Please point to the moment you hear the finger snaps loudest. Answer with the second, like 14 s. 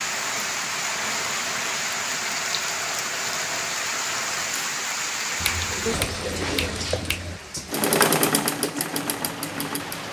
6 s.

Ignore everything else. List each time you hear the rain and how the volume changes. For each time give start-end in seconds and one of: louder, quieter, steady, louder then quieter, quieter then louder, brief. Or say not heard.
0.0-10.0 quieter.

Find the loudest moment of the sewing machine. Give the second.
8 s.